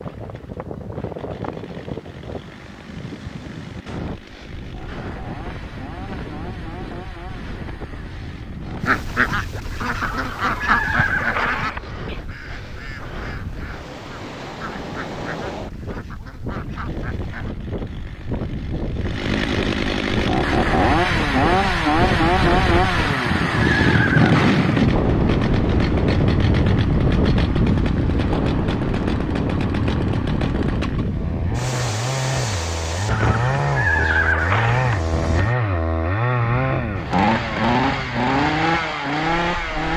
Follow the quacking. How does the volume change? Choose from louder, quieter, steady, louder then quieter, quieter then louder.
quieter.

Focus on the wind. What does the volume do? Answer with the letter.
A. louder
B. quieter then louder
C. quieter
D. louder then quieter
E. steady
D.